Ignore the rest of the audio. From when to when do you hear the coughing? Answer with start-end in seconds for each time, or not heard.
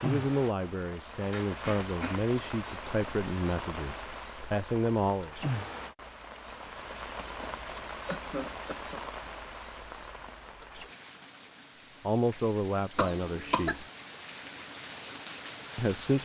1.3-2.3, 8.1-9.0, 12.9-13.8.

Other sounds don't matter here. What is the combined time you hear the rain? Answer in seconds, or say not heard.
16 s.